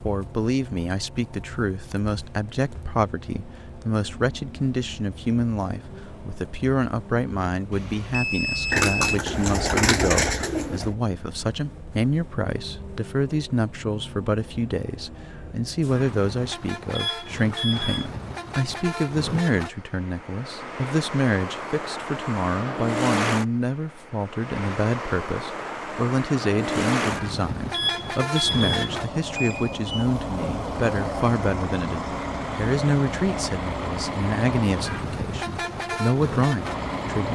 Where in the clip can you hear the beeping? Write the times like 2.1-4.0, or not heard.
7.7-9.2, 16.9-18.1, 27.7-30.1.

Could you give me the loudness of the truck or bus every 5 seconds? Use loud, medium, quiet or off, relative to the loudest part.
quiet, quiet, quiet, medium, loud, loud, loud, loud.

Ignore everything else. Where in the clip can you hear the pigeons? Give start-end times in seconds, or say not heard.
8.7-10.9.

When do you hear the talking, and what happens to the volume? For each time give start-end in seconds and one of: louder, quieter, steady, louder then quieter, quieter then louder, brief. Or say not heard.
0.0-37.3 steady.